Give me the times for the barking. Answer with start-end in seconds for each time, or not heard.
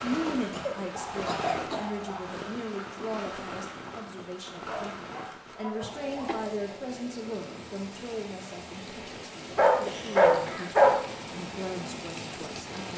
0.9-2.4, 4.5-6.5, 9.6-10.9.